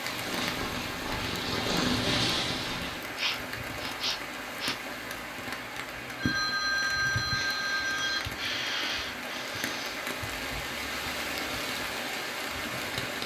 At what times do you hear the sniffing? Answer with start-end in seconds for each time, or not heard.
3.1-4.8, 7.3-10.1.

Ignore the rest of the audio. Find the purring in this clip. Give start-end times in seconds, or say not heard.
0.0-3.1.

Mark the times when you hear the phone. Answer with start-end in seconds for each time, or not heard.
6.2-8.2.